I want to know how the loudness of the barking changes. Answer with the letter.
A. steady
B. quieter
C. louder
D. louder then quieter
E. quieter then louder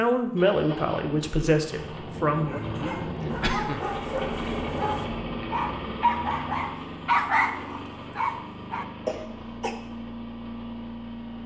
C.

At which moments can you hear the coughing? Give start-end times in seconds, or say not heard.
2.5-3.9, 9.1-9.8.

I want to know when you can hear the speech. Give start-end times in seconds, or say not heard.
0.0-2.6.